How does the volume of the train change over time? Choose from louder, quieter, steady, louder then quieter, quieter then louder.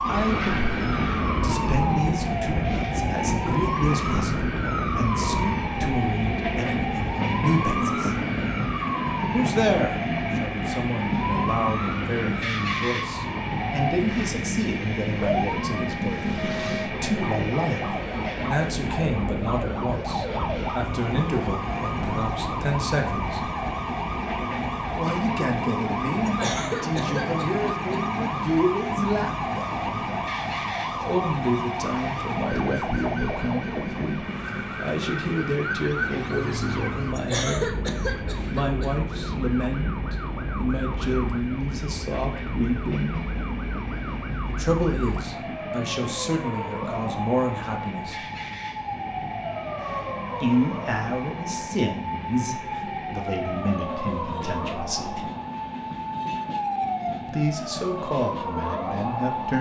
quieter.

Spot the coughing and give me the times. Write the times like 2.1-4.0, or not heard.
26.2-28.0, 37.1-38.9.